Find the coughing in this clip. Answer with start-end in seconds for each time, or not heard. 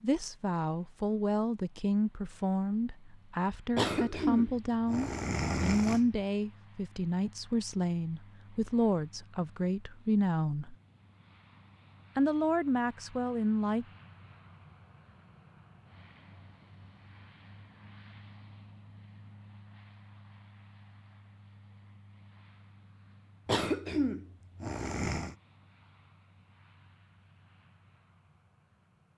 3.8-6.2, 23.4-25.4.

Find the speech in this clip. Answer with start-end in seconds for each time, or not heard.
0.0-10.8, 12.2-13.8.